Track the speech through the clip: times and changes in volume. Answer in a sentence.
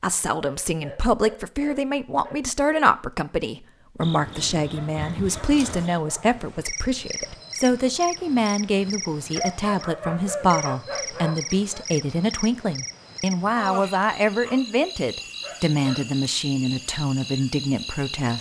The speech can be heard from 0.0 to 18.3 s, at a steady volume.